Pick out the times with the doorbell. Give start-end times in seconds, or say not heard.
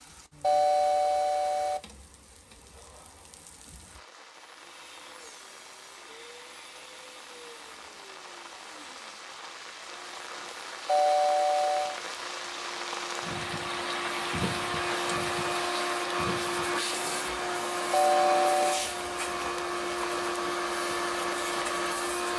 0.4-1.8, 10.8-11.9, 17.9-18.9.